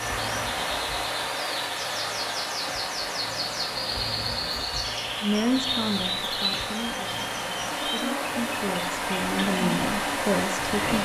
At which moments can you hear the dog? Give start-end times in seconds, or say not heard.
not heard.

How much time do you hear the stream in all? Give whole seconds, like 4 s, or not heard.
11 s.